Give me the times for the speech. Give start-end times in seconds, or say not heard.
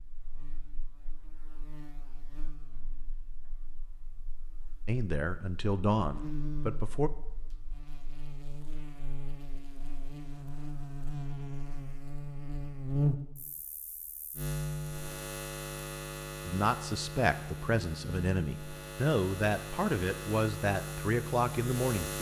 4.8-7.1, 16.4-22.1.